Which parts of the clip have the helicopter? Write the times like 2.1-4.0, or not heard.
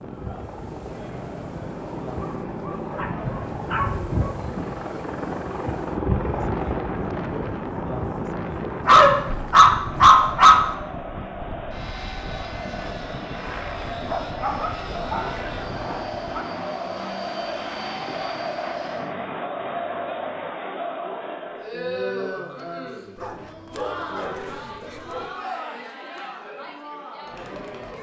0.0-19.1.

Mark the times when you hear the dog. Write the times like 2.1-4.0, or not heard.
2.2-4.3, 8.8-10.7, 14.1-16.4, 23.1-25.3.